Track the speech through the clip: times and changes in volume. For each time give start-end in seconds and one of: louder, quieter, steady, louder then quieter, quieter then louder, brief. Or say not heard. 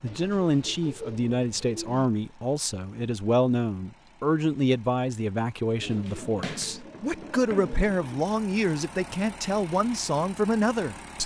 0.0-11.2 steady.